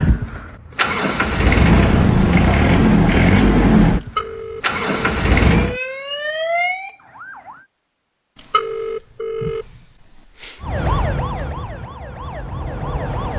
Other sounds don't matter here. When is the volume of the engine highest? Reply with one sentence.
The loudest moment of the engine is at 3 seconds.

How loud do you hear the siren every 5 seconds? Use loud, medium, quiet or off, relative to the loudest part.
off, loud, loud.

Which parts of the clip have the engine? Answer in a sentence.
You can hear the engine from 0.0 to 5.8 s.